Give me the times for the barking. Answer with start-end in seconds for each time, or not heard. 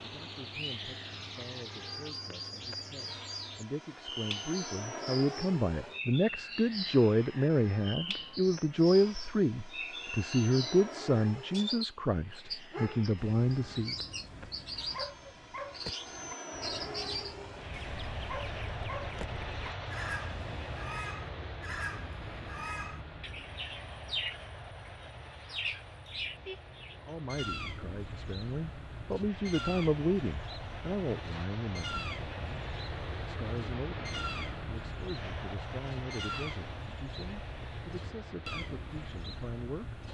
12.2-20.8.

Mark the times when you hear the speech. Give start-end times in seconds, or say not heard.
0.0-13.9, 26.9-40.0.